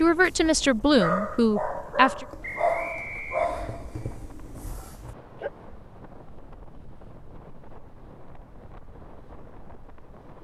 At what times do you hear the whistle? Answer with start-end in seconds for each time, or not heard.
2.4-3.5.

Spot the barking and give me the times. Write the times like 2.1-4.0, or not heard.
0.0-5.5.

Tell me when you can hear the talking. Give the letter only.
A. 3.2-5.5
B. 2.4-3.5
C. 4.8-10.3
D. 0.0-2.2
D.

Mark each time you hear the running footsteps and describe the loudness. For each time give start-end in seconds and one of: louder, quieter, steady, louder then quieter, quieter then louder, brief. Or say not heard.
not heard.